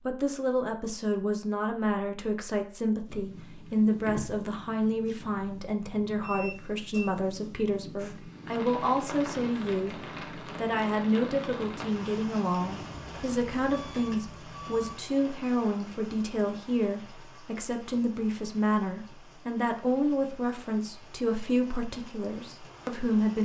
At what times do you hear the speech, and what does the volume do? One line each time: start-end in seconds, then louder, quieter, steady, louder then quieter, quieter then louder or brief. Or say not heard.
0.1-23.4 steady.